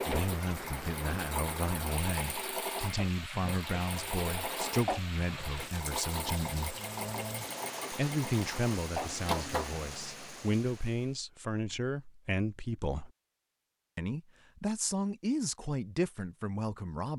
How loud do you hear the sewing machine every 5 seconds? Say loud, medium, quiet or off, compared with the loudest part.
loud, loud, off, off.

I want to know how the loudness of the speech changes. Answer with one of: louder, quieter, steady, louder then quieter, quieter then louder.
steady.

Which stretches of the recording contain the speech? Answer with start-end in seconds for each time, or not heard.
0.1-6.8, 7.9-13.1, 13.9-17.1.